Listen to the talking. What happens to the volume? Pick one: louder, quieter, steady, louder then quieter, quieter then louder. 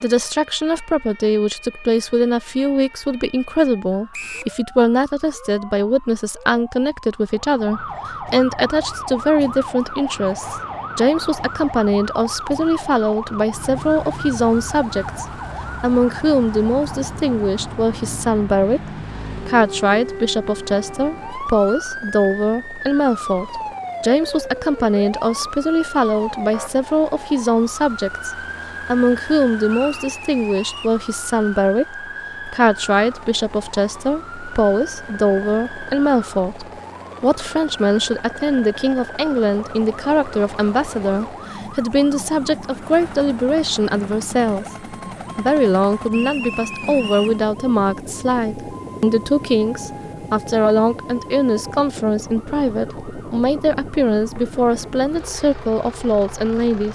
steady.